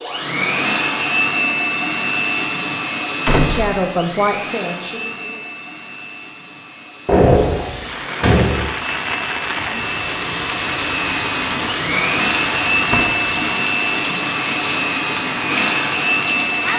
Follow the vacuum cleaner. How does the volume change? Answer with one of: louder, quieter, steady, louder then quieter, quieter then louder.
quieter then louder.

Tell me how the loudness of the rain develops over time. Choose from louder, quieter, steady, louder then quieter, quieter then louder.
steady.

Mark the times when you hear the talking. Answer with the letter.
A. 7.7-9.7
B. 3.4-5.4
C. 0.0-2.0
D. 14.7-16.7
B.